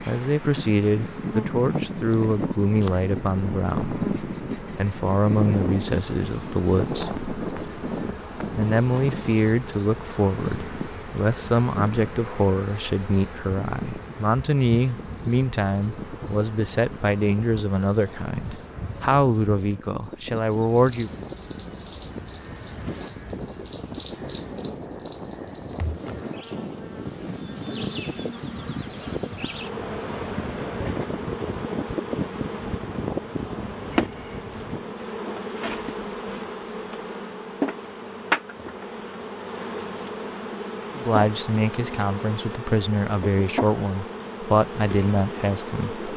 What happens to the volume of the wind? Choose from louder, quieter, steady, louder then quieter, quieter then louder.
quieter then louder.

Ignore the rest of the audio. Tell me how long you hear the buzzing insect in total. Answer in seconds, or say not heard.
46 s.